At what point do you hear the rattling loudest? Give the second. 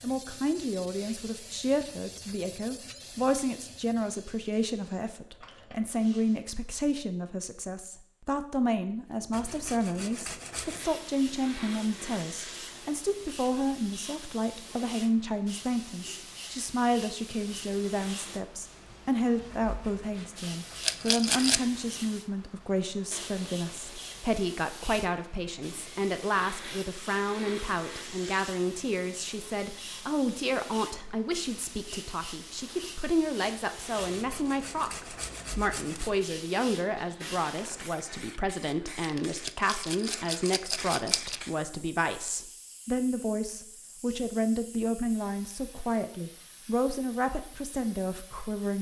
21 s.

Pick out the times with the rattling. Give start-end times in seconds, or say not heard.
20.8-21.6, 39.5-41.4.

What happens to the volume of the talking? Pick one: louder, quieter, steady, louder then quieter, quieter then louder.
steady.